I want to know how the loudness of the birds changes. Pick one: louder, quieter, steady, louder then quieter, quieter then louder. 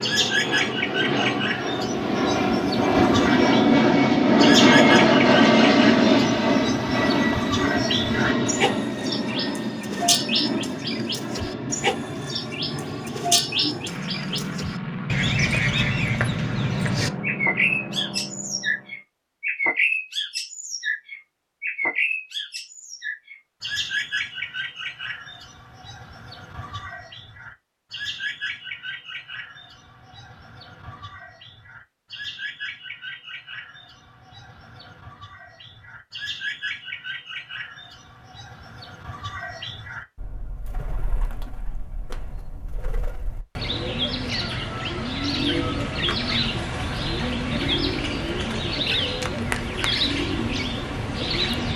quieter then louder.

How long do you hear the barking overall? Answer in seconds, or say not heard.
not heard.